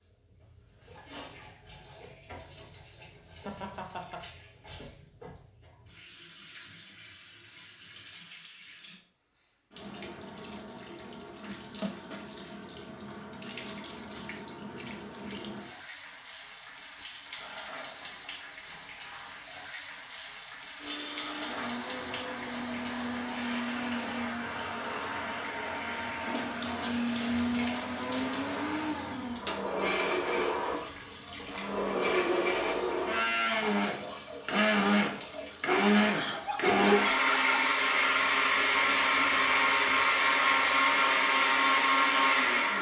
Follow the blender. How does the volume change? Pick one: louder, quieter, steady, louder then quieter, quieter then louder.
louder.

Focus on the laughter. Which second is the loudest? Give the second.
37 s.